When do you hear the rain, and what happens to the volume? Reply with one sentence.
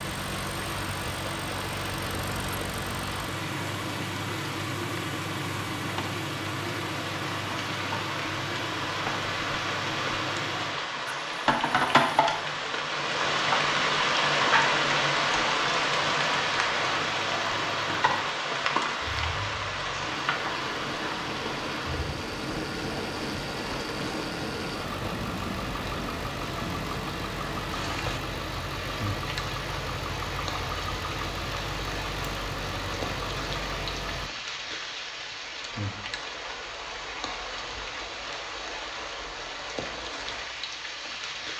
You can hear the rain from 0.0 to 41.5 s, getting louder then quieter.